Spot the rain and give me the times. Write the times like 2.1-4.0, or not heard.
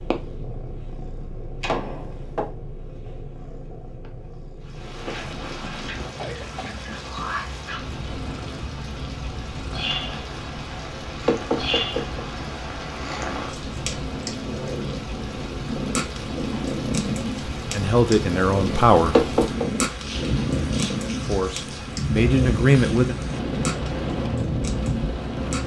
4.6-25.6.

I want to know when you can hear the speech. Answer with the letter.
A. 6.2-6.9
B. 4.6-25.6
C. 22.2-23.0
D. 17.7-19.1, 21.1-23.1
D.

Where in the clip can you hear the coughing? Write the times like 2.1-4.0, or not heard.
6.2-6.9.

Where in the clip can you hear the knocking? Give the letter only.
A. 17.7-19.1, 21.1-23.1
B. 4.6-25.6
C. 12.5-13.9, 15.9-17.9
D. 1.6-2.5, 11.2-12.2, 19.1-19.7
D.